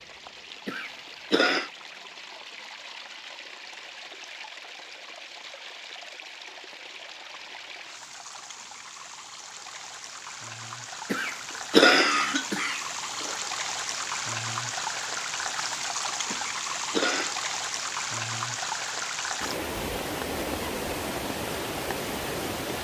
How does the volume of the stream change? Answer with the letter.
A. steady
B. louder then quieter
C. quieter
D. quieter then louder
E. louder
E.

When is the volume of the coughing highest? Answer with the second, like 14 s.
12 s.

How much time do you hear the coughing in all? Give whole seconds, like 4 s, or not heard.
4 s.